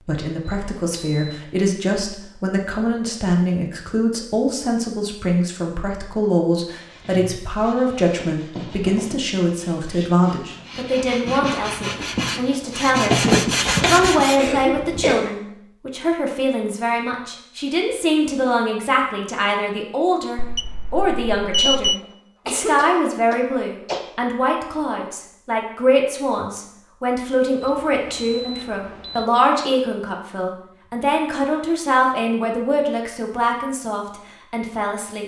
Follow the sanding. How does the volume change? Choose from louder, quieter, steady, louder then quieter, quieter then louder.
louder.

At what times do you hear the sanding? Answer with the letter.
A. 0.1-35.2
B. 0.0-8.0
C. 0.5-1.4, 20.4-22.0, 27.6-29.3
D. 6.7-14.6
D.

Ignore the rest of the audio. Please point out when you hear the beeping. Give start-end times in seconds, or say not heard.
0.5-1.4, 20.4-22.0, 27.6-29.3.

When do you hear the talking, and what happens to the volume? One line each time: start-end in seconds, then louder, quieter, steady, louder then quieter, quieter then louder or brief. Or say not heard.
0.1-35.2 steady.